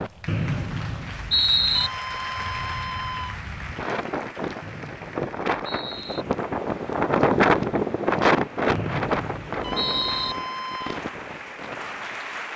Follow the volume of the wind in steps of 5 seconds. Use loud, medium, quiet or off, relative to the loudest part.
quiet, loud, quiet.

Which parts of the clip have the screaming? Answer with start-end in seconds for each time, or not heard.
1.8-3.4, 9.6-11.0.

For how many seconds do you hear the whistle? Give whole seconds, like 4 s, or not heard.
5 s.